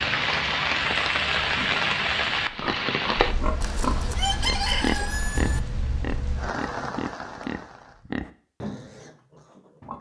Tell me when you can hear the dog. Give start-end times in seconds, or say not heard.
not heard.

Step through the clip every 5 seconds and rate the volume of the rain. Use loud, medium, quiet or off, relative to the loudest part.
loud, medium.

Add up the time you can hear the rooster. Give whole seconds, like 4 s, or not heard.
2 s.